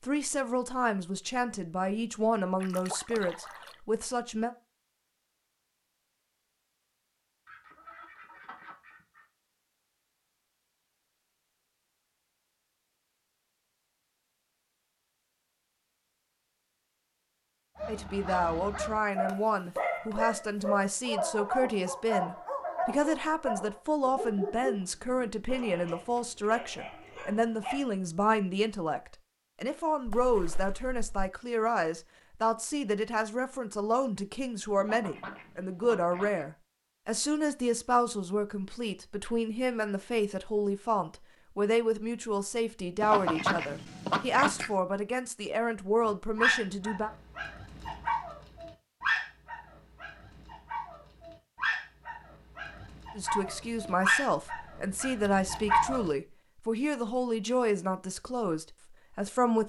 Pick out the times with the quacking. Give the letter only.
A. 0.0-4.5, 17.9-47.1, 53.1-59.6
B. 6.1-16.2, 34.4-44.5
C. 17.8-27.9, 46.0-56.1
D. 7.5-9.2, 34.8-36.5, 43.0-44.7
D.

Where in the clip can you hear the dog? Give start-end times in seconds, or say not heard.
17.8-27.9, 46.0-56.1.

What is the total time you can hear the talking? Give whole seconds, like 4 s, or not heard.
40 s.